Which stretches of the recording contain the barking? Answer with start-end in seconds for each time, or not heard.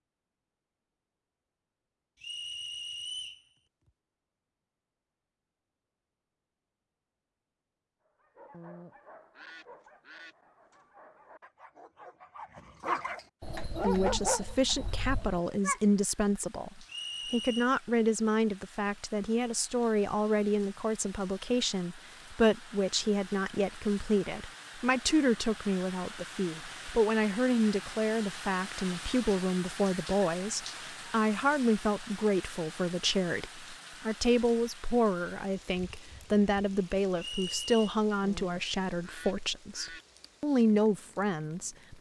8.1-15.8.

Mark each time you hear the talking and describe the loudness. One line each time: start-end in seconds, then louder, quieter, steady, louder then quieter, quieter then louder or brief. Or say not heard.
13.8-41.9 steady.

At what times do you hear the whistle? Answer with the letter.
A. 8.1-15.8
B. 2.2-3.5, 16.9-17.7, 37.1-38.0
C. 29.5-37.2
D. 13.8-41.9
B.